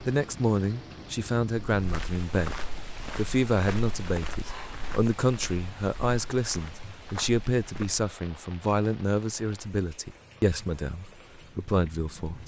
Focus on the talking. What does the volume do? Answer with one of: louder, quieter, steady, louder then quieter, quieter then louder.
steady.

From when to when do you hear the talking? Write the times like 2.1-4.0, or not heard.
0.0-12.4.